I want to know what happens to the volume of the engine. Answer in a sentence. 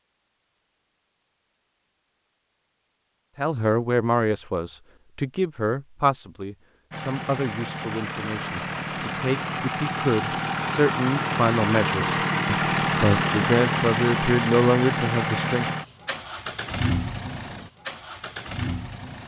The volume of the engine goes up, then down.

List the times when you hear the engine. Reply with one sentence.
You can hear the engine from 6.9 to 19.2 s.